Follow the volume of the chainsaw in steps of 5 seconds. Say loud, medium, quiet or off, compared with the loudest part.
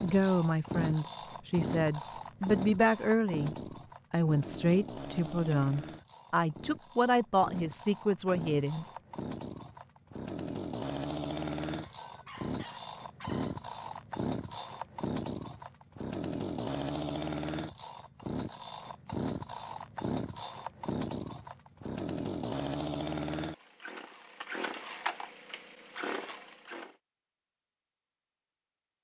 loud, medium, loud, loud, loud, loud.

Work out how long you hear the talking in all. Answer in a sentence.
You can hear the talking for 9 seconds altogether.